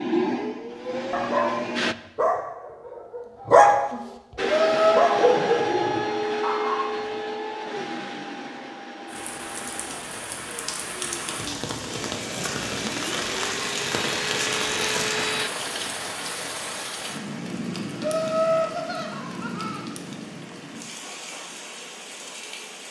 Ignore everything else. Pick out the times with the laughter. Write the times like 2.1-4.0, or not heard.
4.5-5.1, 18.0-19.9.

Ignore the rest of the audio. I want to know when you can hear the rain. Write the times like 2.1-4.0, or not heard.
9.1-22.8.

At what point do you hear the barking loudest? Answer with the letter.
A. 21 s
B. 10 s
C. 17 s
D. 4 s
D.